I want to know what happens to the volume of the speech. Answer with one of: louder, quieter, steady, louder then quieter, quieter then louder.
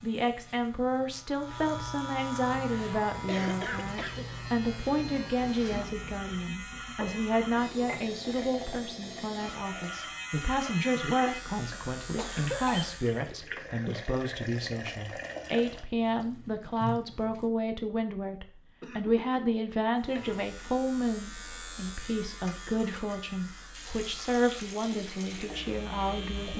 steady.